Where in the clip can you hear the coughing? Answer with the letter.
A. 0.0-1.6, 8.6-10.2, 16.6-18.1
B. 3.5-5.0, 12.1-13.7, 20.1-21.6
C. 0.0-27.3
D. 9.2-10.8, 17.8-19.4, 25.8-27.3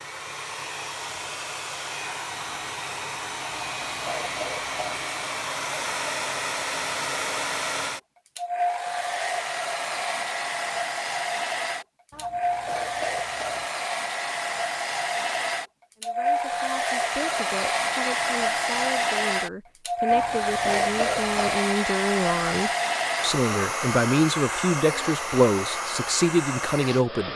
B.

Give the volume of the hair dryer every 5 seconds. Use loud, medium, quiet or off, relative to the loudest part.
medium, loud, loud, loud, loud, medium.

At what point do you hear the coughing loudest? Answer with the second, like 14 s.
21 s.